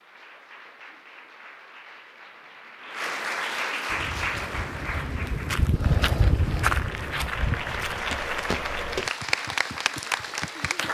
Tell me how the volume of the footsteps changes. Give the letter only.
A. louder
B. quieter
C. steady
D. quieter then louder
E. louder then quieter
E.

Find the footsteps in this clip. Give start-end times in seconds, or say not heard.
3.9-9.1.